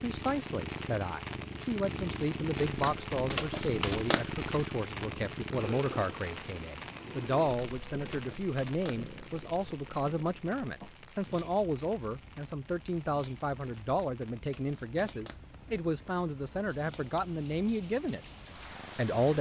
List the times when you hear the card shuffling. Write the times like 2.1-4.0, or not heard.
2.5-4.7, 7.4-9.2, 13.8-15.4.